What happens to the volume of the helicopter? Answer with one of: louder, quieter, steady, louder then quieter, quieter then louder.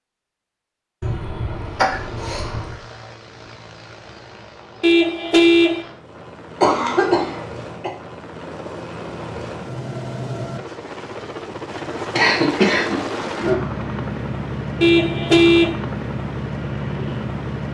louder.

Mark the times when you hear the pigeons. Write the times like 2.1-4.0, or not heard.
not heard.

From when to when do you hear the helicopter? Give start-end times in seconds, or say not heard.
1.5-17.6.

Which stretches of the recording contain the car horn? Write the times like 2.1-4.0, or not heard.
4.8-5.8, 14.8-15.8.